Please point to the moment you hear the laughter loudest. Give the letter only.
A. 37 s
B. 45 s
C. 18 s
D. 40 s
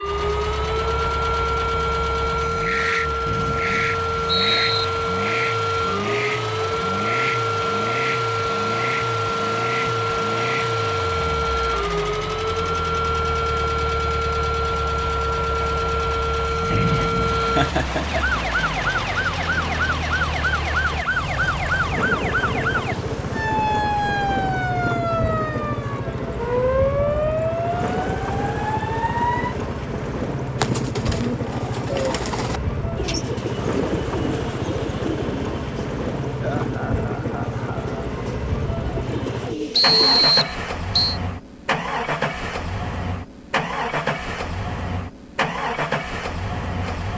C.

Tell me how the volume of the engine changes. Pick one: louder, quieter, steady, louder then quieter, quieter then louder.
steady.